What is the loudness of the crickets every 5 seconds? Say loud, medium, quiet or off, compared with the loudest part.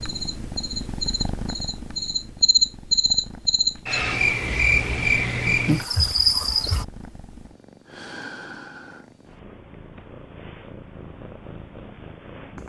loud, loud, off.